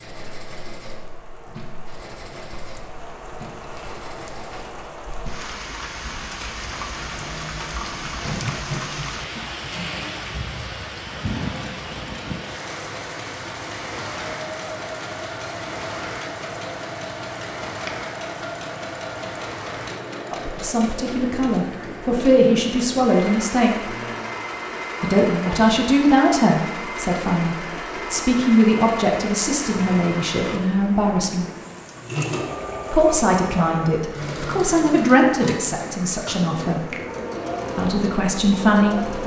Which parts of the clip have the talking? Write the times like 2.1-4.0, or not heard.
20.3-23.9, 25.0-31.4, 32.9-36.8, 37.8-39.2.